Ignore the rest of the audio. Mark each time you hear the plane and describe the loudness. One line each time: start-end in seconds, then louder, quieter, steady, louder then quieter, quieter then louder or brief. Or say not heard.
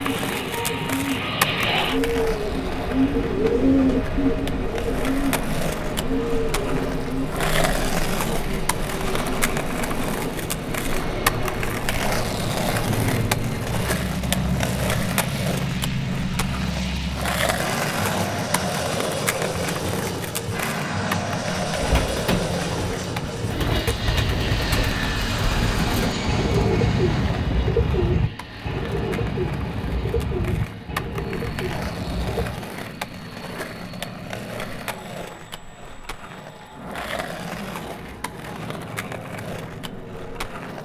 0.0-40.7 quieter.